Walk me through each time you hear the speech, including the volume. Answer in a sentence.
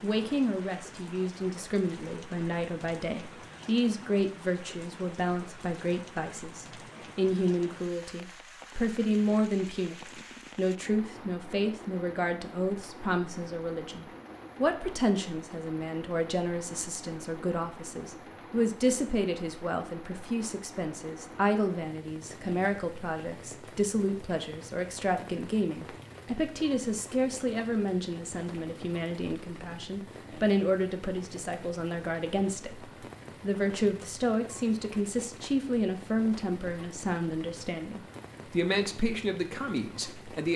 You can hear the speech from 0.0 to 40.5 s, at a steady volume.